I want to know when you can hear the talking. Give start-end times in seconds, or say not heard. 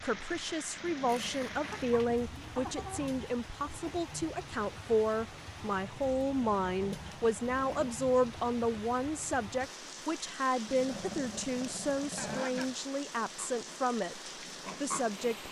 0.0-15.4.